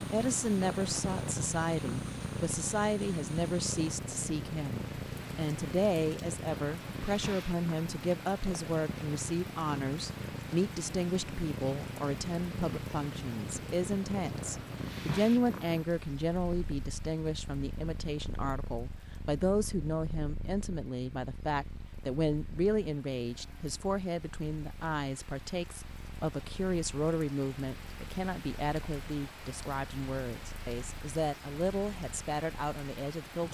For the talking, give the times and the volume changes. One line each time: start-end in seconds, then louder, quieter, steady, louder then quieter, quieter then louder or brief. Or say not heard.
0.0-33.4 steady.